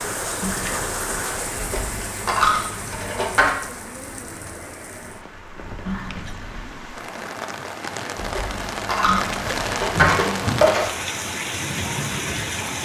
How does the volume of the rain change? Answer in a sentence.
The loudness of the rain goes down, then up.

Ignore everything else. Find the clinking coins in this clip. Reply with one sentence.
You can hear the clinking coins from 1.6 to 3.5 s and from 8.2 to 10.9 s.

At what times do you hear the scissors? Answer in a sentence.
You can hear the scissors from 0.4 to 1.3 s, from 5.8 to 6.8 s and from 9.1 to 10.2 s.